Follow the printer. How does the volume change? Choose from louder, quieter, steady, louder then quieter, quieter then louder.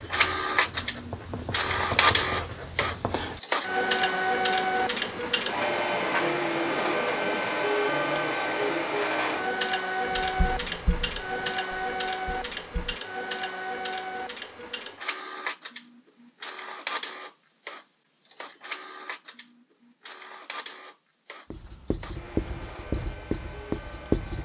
quieter.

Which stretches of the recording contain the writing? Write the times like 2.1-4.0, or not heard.
0.0-7.6, 10.1-13.0, 21.5-24.4.